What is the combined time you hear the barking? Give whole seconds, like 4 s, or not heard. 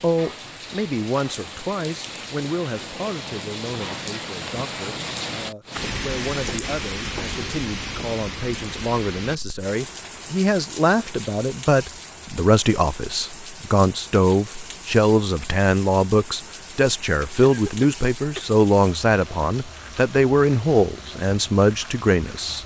not heard.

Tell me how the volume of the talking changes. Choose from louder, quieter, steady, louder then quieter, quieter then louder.
louder.